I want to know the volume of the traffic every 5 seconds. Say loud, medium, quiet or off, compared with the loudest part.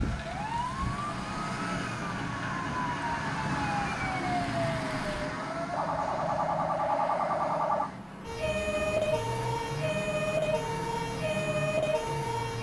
loud, medium, medium.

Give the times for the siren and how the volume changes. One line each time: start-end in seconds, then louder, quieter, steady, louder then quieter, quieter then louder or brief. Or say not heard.
0.0-12.5 louder.